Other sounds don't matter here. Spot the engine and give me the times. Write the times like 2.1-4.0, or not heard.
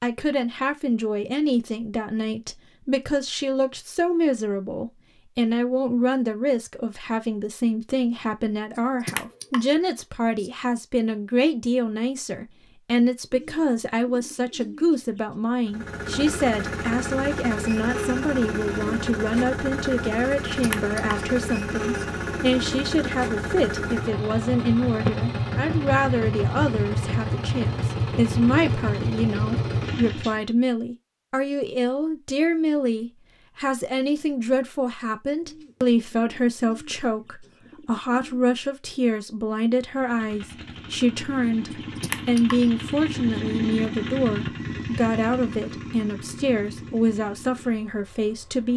15.7-30.4, 39.9-48.7.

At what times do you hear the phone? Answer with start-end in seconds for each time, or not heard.
not heard.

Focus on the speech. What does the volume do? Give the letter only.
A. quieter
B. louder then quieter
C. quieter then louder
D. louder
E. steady
E.